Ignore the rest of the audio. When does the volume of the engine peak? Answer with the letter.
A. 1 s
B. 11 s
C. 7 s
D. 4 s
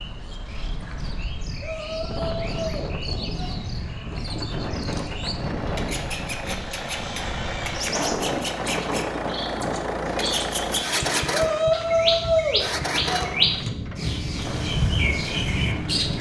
B.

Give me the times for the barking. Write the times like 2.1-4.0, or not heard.
not heard.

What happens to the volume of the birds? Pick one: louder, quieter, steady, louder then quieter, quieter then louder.
louder.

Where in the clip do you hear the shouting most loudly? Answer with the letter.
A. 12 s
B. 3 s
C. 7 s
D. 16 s
A.